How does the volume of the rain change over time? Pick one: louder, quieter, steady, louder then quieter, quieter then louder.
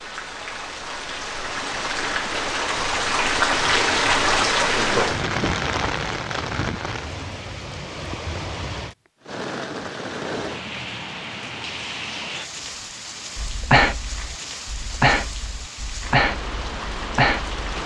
quieter.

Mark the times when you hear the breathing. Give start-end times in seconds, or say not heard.
13.3-17.6.